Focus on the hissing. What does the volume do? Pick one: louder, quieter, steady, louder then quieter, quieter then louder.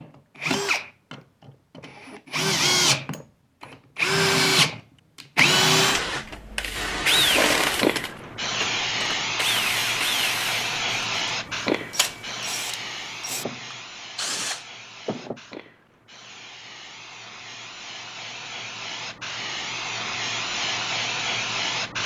quieter then louder.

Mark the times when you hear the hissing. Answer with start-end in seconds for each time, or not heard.
5.9-22.0.